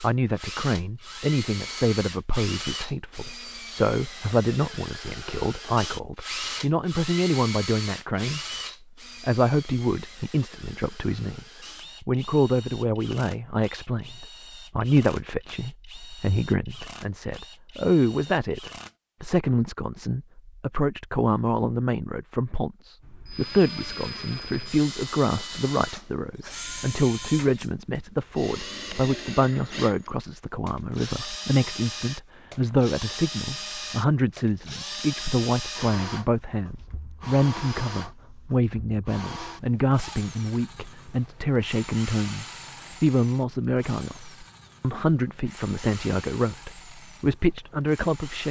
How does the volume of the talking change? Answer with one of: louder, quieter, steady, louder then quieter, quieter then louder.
steady.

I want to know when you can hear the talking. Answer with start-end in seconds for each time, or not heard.
0.0-8.4, 9.2-48.4.